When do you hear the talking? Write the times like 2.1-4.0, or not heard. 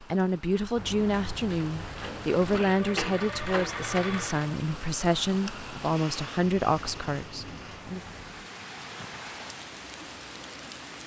0.0-8.0.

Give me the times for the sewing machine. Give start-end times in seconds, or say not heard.
1.9-4.6.